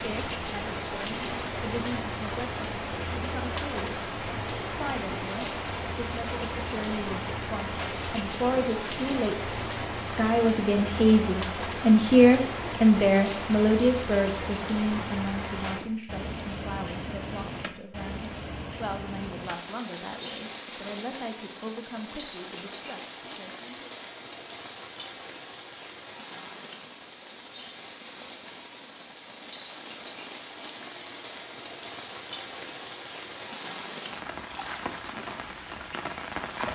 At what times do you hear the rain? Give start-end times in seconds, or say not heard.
0.0-36.7.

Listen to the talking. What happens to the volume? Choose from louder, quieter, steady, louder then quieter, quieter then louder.
louder then quieter.